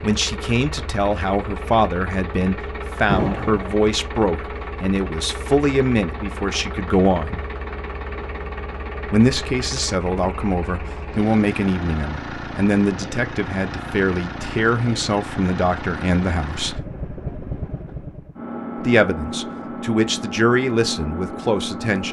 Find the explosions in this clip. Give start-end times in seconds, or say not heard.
3.0-3.8.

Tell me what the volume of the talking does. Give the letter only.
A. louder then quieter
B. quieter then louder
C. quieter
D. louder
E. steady
E.